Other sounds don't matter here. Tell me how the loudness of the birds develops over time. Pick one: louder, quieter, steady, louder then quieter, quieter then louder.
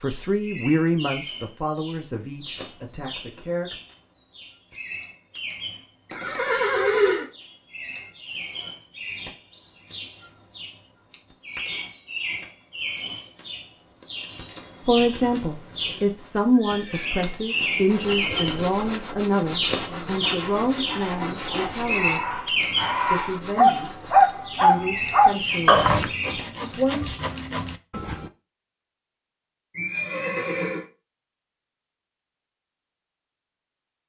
louder.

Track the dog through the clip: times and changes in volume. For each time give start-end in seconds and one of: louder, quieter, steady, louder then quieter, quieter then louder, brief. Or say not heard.
20.9-26.1 louder.